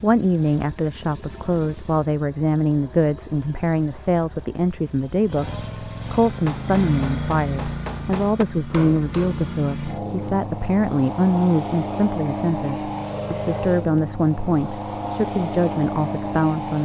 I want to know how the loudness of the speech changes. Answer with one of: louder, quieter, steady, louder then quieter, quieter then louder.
steady.